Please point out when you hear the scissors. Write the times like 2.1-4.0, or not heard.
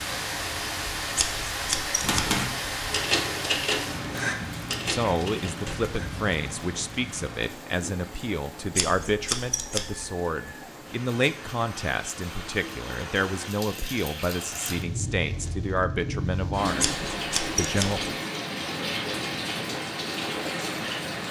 1.1-2.4, 8.8-10.1, 16.8-18.1.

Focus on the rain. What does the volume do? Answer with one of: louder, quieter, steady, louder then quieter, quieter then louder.
quieter then louder.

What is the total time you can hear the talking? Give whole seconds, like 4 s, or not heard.
13 s.